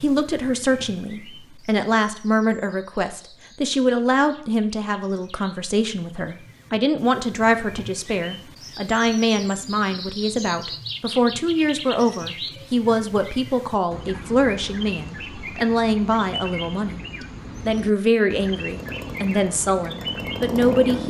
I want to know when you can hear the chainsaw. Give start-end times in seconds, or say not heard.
18.6-21.0.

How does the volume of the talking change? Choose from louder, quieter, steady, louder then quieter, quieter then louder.
steady.